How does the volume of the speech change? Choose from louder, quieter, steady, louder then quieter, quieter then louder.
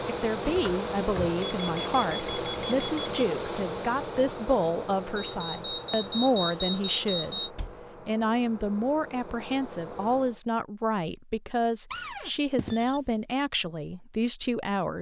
steady.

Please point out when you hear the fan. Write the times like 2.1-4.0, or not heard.
0.0-10.4.